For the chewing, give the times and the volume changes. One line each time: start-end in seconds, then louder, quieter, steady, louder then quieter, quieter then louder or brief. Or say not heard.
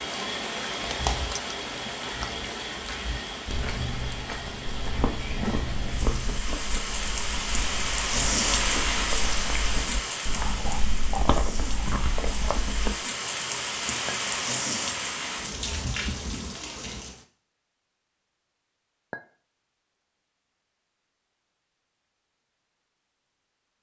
4.8-12.9 quieter then louder.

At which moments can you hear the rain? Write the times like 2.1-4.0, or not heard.
0.0-17.2.